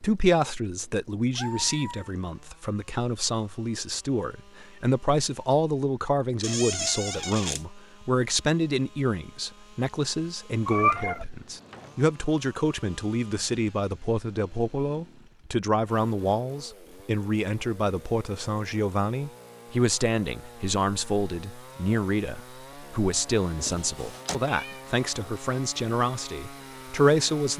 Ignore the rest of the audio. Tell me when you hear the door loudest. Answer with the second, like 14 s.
7 s.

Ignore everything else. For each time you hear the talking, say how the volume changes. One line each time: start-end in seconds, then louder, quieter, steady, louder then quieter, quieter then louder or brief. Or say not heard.
0.0-27.5 steady.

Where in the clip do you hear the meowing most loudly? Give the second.
11 s.